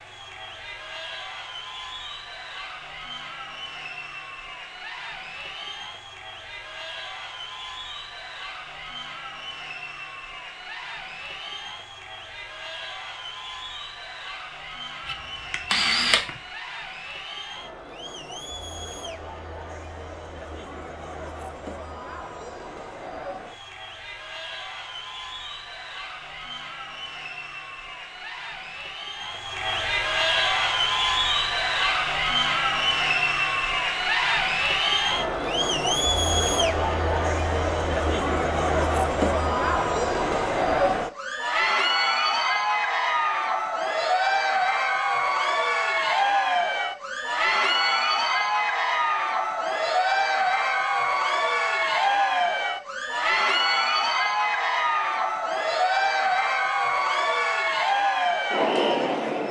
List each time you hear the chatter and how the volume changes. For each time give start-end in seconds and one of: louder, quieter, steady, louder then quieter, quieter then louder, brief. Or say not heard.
0.0-59.4 louder.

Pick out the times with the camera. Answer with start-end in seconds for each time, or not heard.
15.1-16.3.